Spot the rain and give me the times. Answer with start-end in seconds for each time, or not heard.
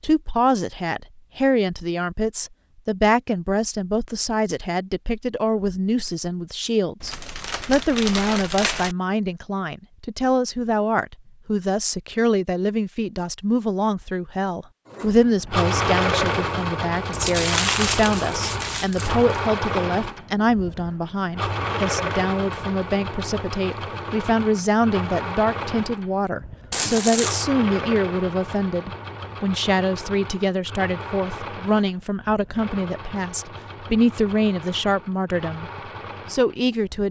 not heard.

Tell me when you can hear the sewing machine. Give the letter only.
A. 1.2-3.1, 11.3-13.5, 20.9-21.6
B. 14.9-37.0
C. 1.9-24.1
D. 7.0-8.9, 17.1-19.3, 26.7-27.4
B.